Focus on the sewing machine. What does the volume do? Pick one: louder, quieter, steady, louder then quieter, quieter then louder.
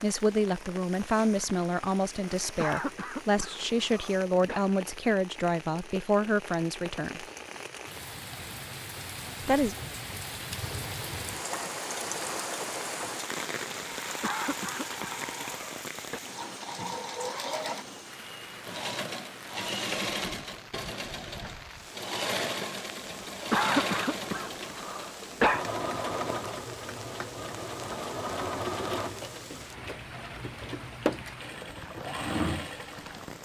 louder.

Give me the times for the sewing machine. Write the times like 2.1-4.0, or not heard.
10.6-33.3.